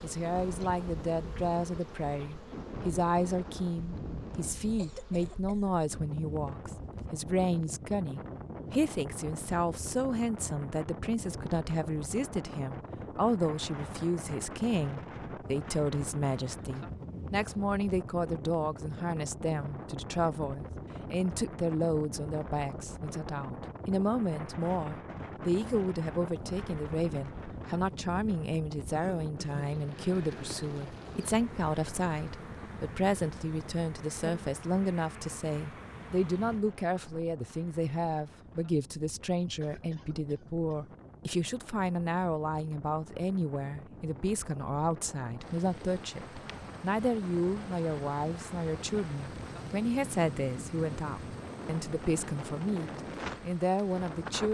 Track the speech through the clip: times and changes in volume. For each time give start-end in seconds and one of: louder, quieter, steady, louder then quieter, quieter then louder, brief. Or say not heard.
0.0-54.5 steady.